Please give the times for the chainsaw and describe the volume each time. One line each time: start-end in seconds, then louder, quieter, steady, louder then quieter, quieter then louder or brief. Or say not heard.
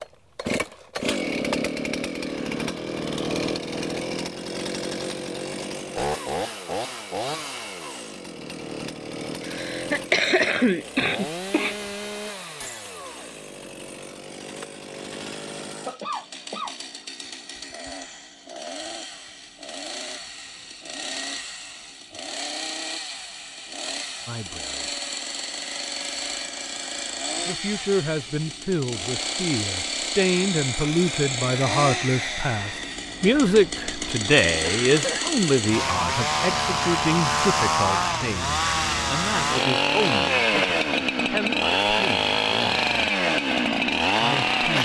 0.0-44.8 quieter then louder.